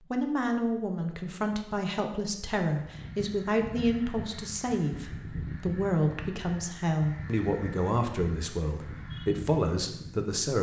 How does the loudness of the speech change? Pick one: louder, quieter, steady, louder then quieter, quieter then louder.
steady.